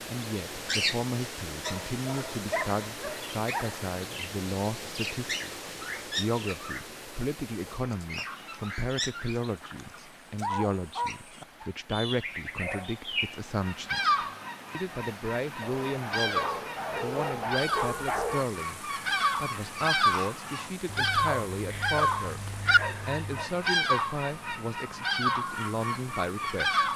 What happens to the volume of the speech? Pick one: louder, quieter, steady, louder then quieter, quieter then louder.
steady.